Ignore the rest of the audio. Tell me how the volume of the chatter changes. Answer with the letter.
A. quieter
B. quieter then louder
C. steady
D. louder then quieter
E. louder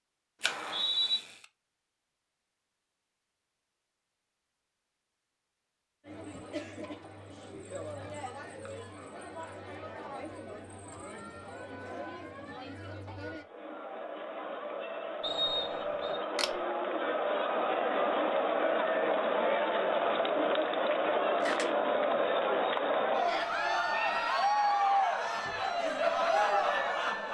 E.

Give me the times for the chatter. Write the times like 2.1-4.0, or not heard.
6.0-27.2.